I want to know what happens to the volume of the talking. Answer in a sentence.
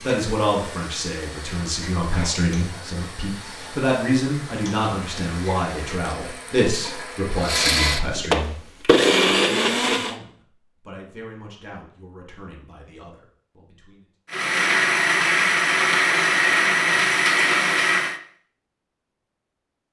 The loudness of the talking goes down.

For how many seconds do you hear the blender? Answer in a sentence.
The blender can be heard for 14 seconds in total.